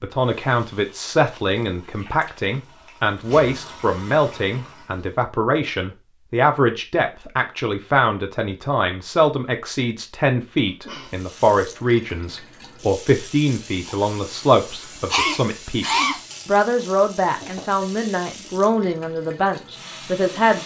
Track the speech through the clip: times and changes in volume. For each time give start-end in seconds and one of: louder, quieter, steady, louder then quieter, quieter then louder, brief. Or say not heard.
0.0-20.6 steady.